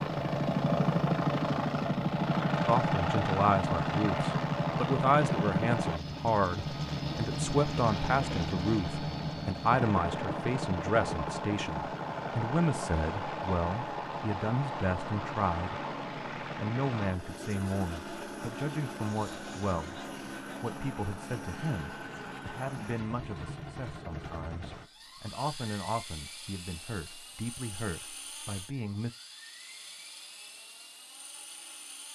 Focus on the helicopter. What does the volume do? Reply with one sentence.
The volume of the helicopter goes down.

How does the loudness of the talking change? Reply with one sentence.
The volume of the talking goes down.